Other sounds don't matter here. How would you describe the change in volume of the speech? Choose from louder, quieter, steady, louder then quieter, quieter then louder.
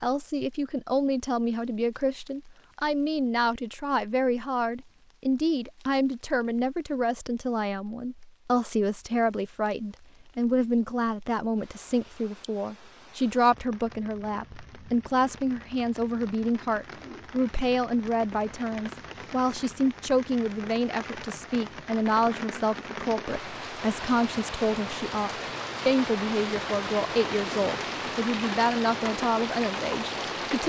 steady.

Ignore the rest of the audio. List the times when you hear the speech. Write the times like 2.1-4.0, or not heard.
0.0-30.6.